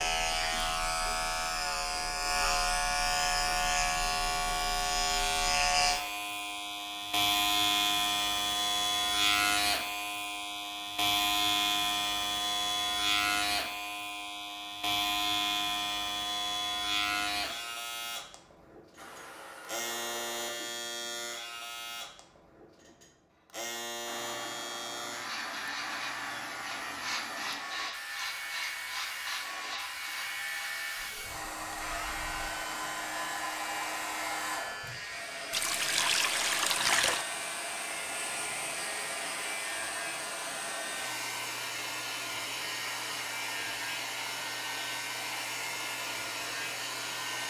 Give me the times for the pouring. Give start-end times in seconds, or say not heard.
35.5-37.2.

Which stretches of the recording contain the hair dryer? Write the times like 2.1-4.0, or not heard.
18.9-20.5, 24.1-47.4.